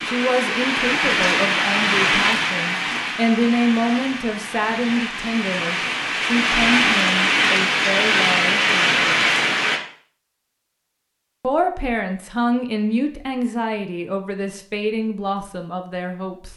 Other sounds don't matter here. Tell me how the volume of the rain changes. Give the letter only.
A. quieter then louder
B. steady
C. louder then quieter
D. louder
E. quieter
A.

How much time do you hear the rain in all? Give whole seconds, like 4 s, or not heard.
10 s.